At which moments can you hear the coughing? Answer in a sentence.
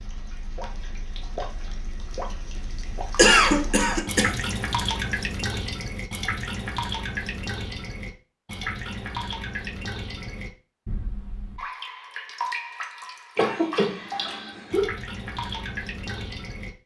The coughing can be heard from 3.1 to 4.3 s and from 13.3 to 14.9 s.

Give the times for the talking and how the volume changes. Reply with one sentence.
You can't hear the talking here.